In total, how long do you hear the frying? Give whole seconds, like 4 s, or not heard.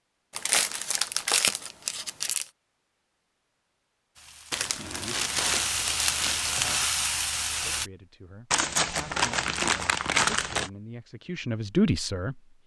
4 s.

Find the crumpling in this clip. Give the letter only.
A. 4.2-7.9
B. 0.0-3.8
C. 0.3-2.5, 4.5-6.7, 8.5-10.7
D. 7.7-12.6
C.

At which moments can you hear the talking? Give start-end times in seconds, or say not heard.
7.7-12.6.